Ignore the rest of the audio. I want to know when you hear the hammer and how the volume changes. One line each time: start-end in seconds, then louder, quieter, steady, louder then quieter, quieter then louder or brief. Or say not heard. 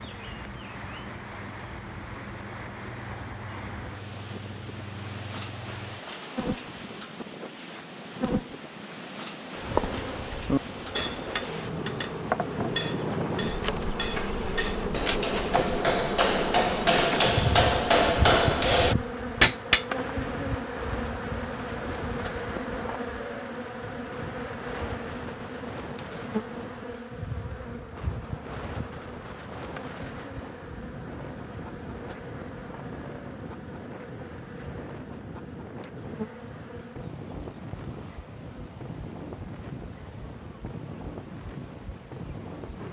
10.2-19.9 quieter then louder.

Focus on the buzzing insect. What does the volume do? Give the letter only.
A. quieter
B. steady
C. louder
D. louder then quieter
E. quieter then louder
D.